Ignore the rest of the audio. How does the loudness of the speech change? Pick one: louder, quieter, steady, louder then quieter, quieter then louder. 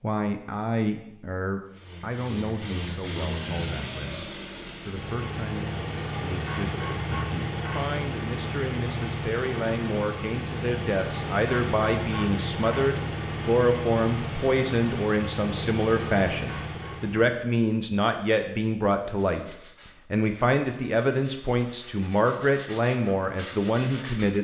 louder.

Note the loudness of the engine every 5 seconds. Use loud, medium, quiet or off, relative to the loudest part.
loud, loud, loud, loud, off.